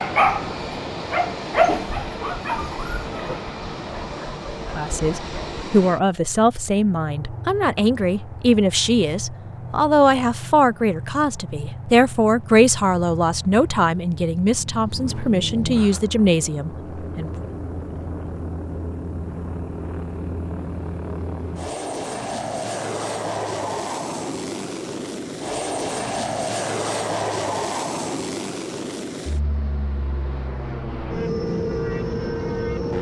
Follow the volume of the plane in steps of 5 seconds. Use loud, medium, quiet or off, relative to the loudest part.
medium, medium, medium, medium, loud, loud, loud.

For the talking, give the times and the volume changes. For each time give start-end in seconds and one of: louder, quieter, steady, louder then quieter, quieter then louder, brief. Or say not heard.
4.8-17.3 steady.